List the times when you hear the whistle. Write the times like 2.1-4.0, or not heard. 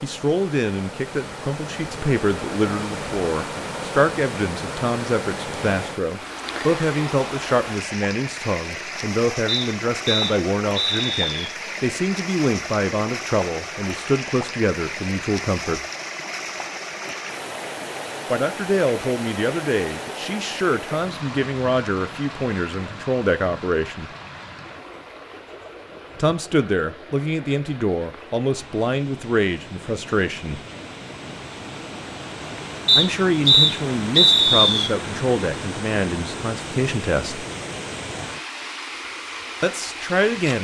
9.4-11.4, 32.9-34.9.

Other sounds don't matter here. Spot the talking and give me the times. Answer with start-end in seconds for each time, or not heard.
0.0-15.8, 18.3-24.1, 26.1-30.6, 33.0-37.5, 39.6-40.5.